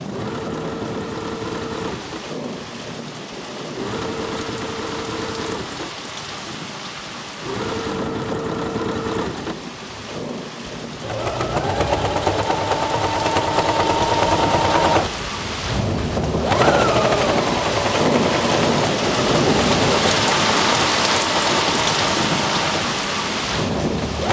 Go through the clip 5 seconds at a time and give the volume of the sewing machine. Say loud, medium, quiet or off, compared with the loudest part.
medium, medium, loud, loud, medium.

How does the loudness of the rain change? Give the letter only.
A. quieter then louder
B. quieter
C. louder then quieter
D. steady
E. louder
E.